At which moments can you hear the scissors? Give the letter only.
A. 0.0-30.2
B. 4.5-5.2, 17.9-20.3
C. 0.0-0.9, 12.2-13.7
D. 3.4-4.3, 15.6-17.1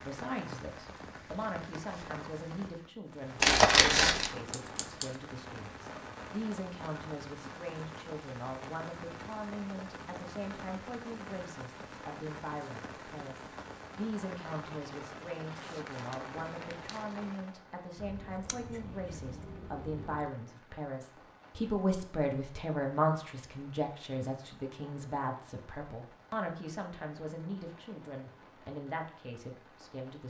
B.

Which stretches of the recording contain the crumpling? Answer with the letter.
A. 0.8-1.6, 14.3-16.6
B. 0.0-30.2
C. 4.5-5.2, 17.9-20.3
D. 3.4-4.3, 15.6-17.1
D.